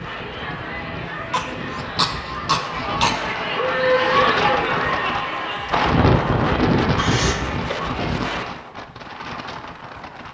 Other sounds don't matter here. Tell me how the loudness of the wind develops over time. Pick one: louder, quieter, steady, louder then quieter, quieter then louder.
louder then quieter.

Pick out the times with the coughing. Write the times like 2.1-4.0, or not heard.
1.3-3.2, 7.0-7.8.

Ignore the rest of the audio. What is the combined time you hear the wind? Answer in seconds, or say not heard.
10 s.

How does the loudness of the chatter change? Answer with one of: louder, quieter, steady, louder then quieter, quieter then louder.
louder then quieter.